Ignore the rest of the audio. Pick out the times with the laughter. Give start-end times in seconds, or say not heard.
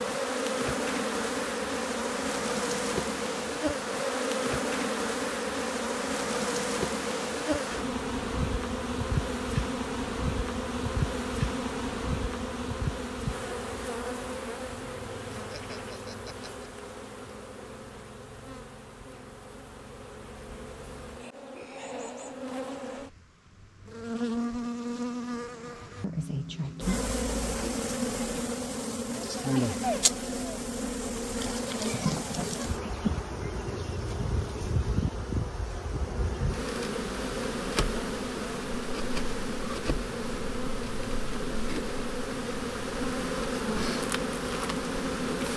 15.3-16.7, 29.1-30.6.